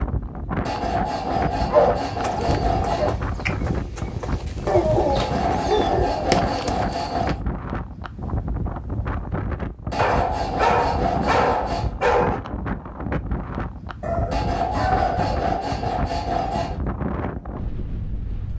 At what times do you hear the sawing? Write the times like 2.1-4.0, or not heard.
0.7-3.1, 5.2-7.4, 9.9-11.9, 14.3-16.8.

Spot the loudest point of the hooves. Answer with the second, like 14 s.
6 s.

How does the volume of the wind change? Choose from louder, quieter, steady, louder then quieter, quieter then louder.
steady.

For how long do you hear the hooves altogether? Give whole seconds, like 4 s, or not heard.
5 s.